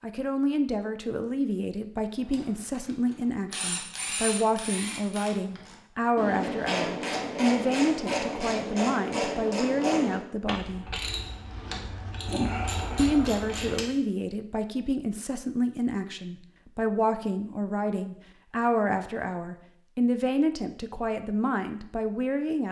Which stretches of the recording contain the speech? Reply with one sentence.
You can hear the speech from 0.0 to 10.9 s and from 12.9 to 22.6 s.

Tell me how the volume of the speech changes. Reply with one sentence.
The loudness of the speech stays about the same.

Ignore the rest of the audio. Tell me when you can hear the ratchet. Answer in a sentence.
The ratchet can be heard from 2.3 to 13.9 s.